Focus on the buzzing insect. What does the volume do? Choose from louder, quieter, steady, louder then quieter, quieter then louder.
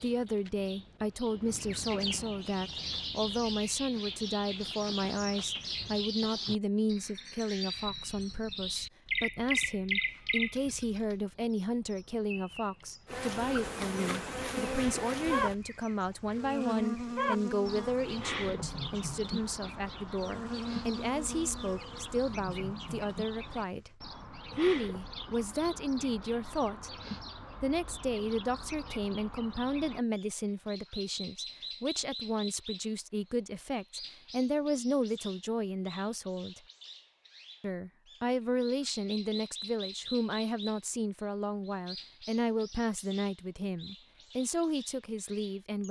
quieter.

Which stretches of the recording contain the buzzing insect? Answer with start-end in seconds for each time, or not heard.
13.1-24.0.